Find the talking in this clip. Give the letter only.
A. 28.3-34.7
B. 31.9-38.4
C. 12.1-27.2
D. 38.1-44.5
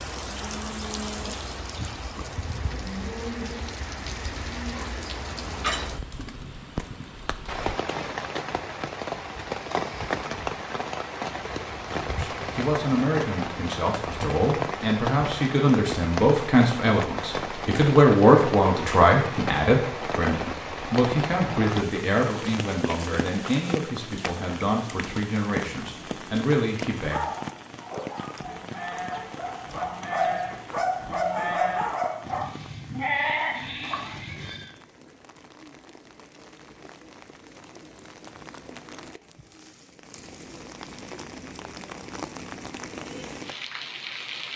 C.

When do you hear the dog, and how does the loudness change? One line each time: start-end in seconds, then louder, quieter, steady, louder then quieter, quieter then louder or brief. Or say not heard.
27.0-32.6 louder.